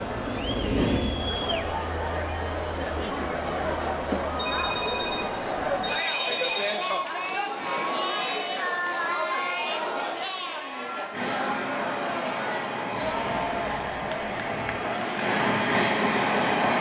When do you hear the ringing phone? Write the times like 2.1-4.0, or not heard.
4.4-6.8.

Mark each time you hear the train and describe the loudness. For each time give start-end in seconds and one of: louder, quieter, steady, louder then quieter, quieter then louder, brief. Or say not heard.
0.0-1.8 brief
11.1-16.7 louder.